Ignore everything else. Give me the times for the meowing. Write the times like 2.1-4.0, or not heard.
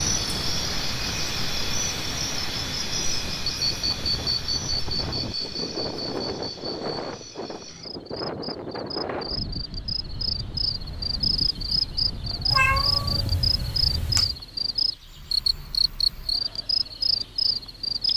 12.5-14.4.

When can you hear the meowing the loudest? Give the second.
13 s.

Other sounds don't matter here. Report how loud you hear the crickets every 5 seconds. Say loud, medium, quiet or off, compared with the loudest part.
loud, medium, loud, loud.